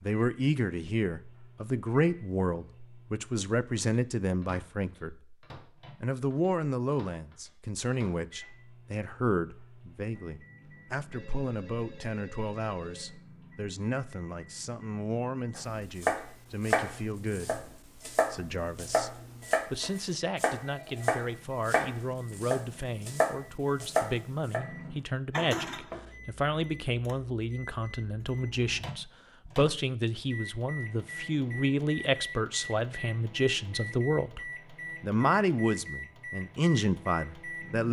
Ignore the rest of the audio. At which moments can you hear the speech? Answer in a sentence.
You can hear the speech from 0.0 to 5.3 s and from 6.0 to 37.8 s.